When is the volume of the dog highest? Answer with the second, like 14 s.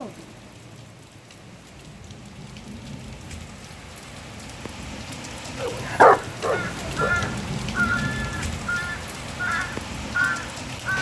6 s.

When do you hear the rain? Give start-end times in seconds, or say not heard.
0.0-10.9.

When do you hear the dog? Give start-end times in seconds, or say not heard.
5.5-7.5.